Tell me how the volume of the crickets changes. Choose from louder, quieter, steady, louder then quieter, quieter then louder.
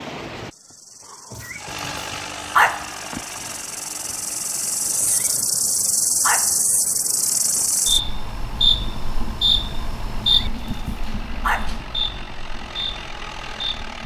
louder then quieter.